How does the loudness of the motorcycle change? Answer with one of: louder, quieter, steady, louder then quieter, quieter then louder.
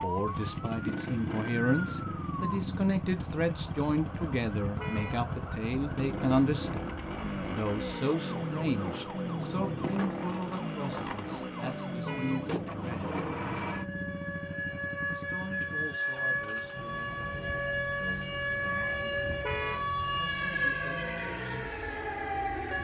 quieter.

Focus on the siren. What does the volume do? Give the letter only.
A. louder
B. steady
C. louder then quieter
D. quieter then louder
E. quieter
A.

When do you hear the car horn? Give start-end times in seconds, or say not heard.
4.8-5.2, 12.1-12.5, 19.4-19.9.